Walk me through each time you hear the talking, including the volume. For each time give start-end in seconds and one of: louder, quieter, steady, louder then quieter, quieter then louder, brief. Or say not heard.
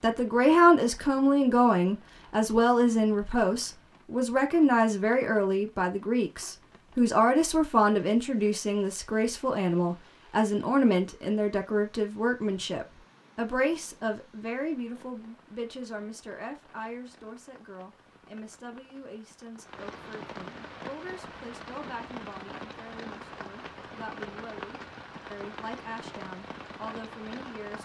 0.0-27.8 quieter.